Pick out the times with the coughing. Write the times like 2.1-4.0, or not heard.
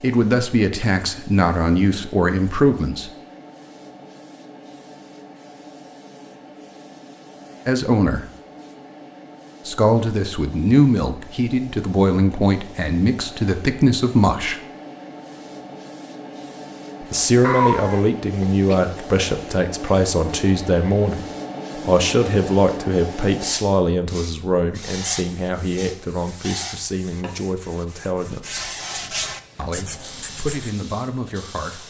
17.4-18.8.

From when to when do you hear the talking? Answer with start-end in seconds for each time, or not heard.
0.0-3.1, 7.7-8.2, 9.7-14.6, 17.0-28.6, 29.6-31.8.